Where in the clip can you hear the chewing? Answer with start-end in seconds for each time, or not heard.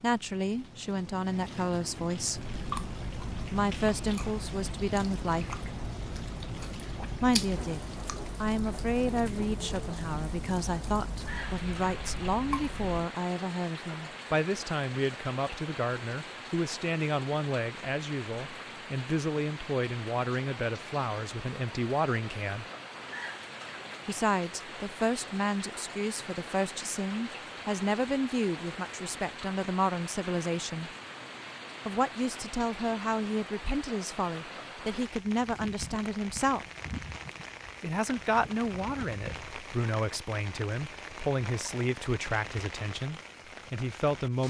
2.3-13.1.